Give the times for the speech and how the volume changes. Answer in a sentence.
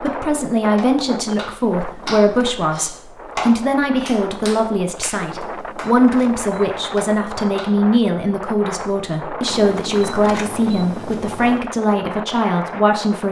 You can hear the speech from 0.0 to 13.2 s, at a steady volume.